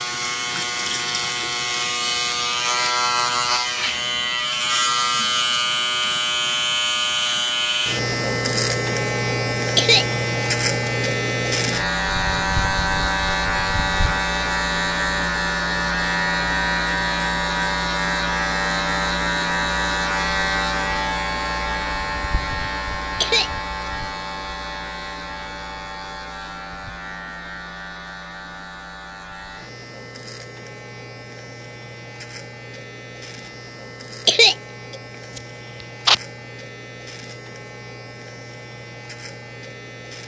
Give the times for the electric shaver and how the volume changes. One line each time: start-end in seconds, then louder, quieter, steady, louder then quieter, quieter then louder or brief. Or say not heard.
0.0-40.2 quieter.